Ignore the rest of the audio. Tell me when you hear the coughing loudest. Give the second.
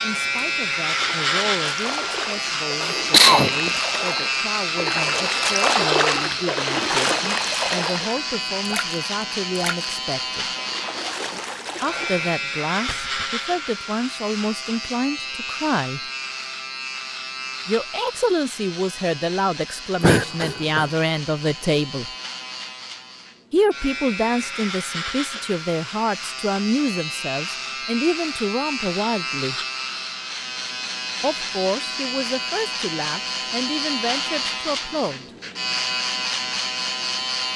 3 s.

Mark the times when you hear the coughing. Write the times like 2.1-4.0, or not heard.
2.8-3.7, 20.0-20.9.